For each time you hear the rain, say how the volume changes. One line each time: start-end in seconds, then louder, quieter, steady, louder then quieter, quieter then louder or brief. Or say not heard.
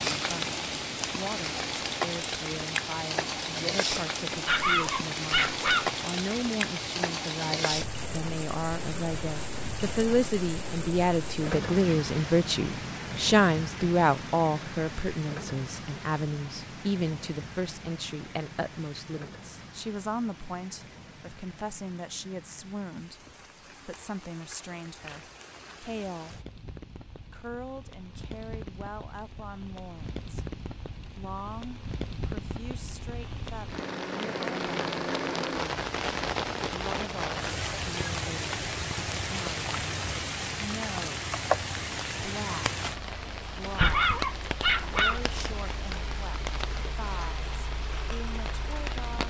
0.0-49.2 quieter then louder.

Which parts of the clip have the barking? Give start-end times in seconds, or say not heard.
4.3-5.9, 43.6-45.2.